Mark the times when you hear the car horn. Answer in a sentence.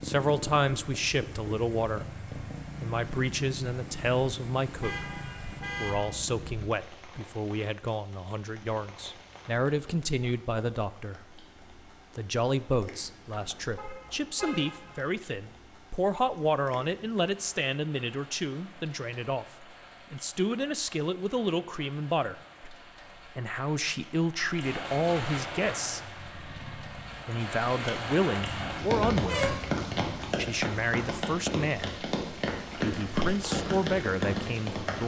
The car horn can be heard from 4.8 to 6.1 s, from 13.8 to 15.1 s and from 28.4 to 30.4 s.